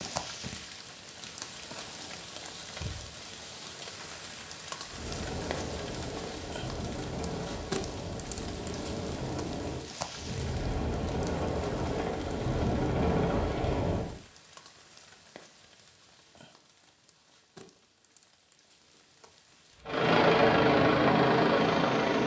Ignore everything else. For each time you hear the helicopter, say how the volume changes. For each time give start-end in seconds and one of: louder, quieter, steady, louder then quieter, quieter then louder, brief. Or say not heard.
4.8-14.2 louder
19.9-22.2 brief.